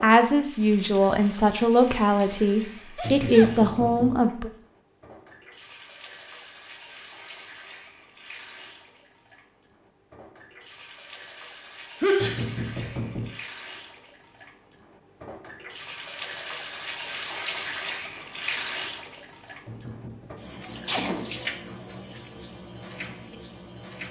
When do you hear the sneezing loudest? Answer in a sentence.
The volume of the sneezing peaks at 12 seconds.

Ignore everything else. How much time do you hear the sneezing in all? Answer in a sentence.
The sneezing can be heard for 2 seconds in total.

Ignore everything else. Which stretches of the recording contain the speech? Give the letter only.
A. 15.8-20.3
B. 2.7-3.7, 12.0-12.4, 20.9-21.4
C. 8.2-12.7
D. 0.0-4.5
D.